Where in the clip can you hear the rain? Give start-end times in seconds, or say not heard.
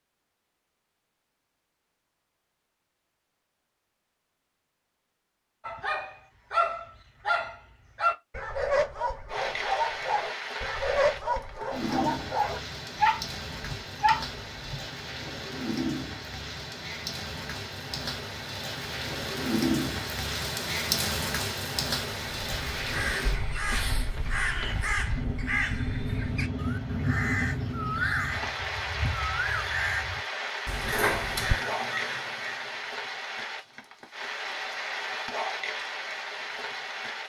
9.2-37.2.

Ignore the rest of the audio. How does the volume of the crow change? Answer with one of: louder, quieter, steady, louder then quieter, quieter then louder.
steady.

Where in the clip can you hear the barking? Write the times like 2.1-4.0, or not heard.
5.7-14.8.